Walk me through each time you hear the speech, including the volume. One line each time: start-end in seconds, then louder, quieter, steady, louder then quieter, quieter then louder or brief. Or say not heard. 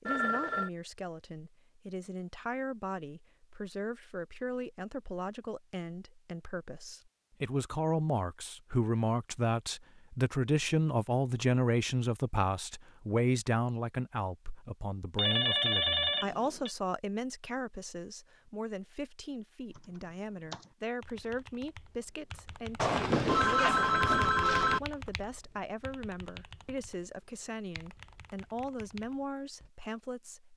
0.0-30.5 louder then quieter.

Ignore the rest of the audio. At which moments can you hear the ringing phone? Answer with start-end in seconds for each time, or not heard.
0.1-0.7, 15.2-16.7, 22.8-24.8.